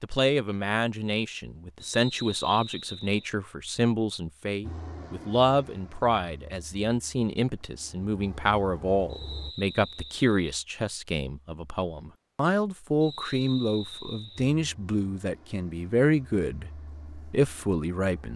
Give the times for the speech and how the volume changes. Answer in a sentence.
The speech can be heard from 0.0 to 18.3 s, at a steady volume.